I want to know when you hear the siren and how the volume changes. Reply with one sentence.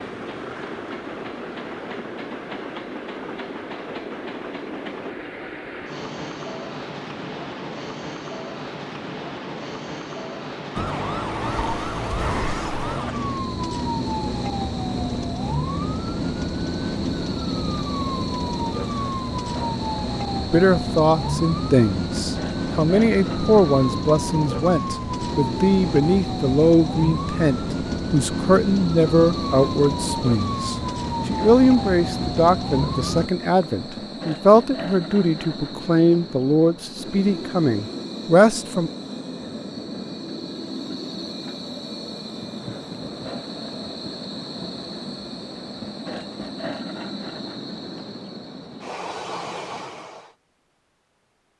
The siren can be heard from 10.8 to 33.3 s, at a steady volume.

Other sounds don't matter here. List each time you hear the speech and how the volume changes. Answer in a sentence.
The speech can be heard from 20.5 to 38.9 s, at a steady volume.